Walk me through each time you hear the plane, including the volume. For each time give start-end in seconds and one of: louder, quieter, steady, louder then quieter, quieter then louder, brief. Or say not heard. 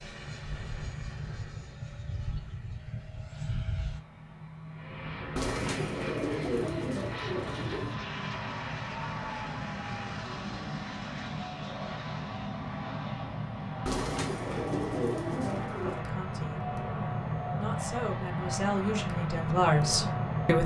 0.0-20.6 louder.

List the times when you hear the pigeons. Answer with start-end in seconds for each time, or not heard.
5.3-8.0, 13.8-16.0.